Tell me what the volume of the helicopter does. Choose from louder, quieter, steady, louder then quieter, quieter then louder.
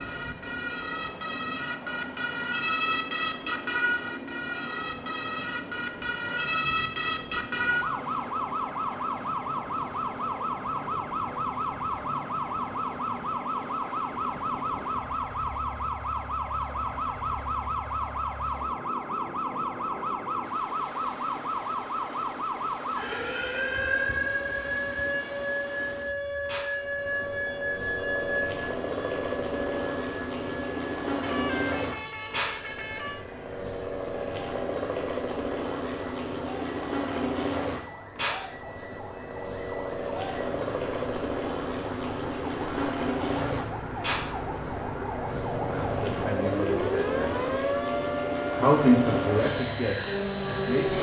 louder.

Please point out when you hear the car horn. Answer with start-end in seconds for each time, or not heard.
31.2-33.2.